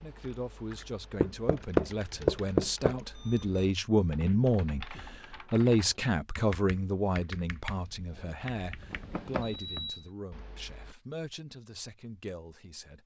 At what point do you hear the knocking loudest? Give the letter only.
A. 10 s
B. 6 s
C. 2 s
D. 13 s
C.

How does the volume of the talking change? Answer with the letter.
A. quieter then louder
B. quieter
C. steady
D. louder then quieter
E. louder
D.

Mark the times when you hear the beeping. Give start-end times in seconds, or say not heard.
3.1-3.5, 9.4-10.1.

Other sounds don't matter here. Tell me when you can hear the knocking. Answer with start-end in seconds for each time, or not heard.
1.2-3.0, 8.9-9.6.